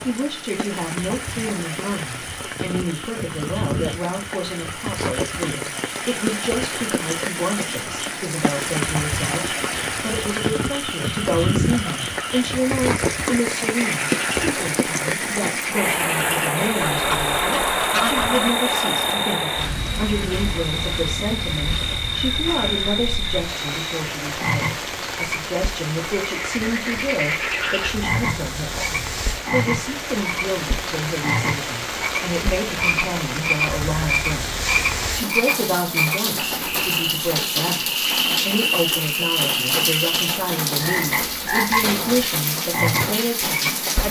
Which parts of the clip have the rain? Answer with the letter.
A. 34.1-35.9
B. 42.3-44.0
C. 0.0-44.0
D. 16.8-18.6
C.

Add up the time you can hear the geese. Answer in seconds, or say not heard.
2 s.